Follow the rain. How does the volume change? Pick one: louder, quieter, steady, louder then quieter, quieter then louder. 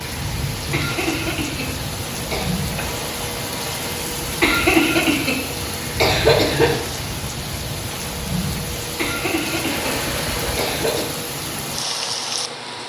steady.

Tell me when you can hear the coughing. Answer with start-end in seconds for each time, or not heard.
0.7-2.6, 4.4-6.7, 8.9-11.1.